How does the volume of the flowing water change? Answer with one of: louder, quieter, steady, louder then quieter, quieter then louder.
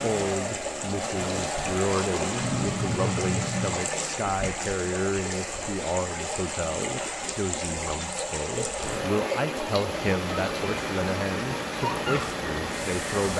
steady.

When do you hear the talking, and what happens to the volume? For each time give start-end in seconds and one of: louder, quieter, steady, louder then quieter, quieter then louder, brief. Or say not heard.
0.0-13.3 steady.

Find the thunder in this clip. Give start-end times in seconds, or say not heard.
2.0-3.9.